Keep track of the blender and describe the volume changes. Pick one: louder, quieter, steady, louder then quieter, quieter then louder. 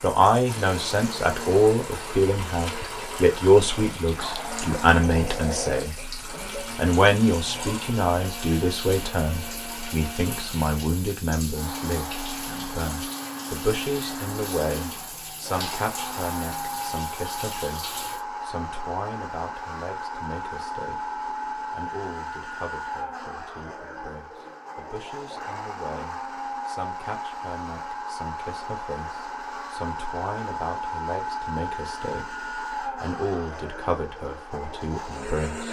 steady.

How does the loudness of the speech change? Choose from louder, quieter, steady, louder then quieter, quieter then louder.
quieter then louder.